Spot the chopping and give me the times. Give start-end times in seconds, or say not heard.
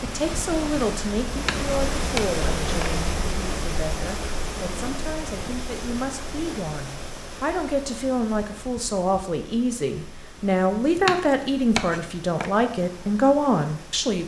1.4-3.0, 10.9-12.5.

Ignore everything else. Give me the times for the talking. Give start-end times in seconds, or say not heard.
0.0-14.2.